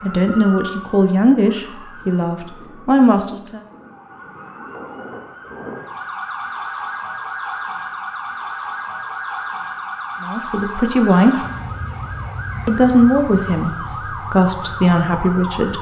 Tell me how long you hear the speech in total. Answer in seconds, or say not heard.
7 s.